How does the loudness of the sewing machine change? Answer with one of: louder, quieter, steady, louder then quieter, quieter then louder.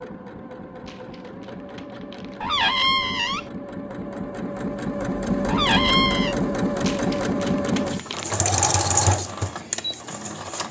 louder.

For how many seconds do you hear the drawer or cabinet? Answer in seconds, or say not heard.
2 s.